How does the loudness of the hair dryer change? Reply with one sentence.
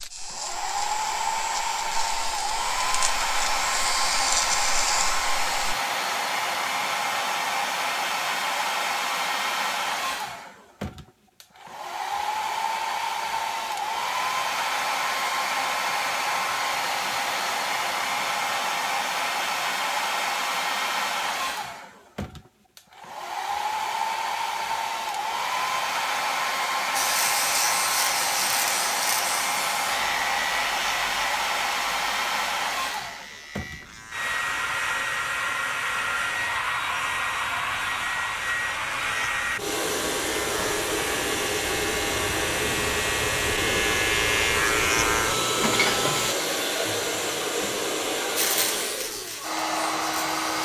The volume of the hair dryer stays about the same.